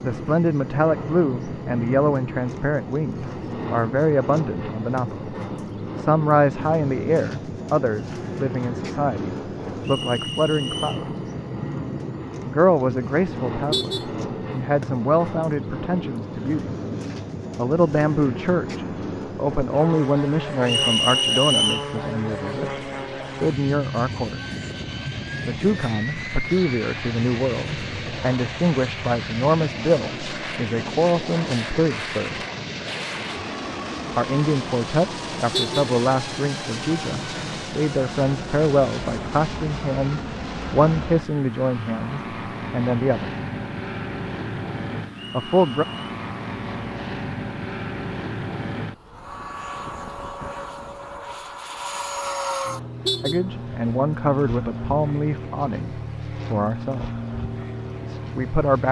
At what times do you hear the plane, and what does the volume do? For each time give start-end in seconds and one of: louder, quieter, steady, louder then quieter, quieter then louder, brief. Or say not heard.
0.0-58.8 steady.